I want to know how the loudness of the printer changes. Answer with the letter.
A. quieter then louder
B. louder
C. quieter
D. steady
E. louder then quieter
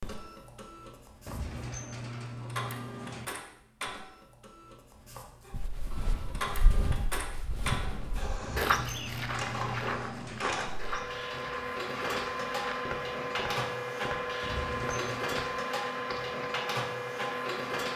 B.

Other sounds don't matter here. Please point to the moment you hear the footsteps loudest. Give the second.
9 s.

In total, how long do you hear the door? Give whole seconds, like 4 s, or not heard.
5 s.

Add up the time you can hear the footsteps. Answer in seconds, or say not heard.
11 s.